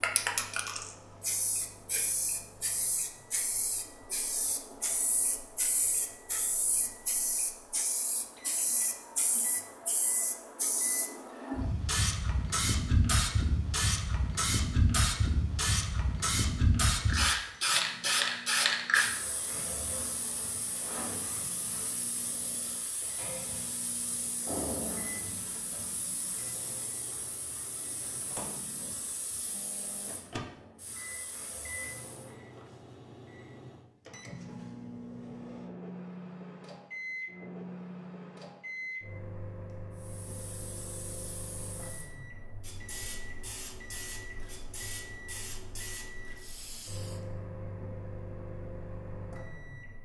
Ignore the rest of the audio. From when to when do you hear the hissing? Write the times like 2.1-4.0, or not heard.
0.0-32.4, 40.0-47.2.